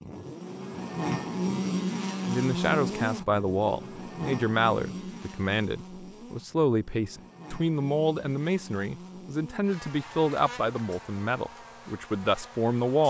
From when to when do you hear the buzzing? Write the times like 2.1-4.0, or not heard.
0.0-13.0.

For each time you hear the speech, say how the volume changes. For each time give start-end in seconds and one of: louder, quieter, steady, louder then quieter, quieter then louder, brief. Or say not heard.
2.2-13.0 steady.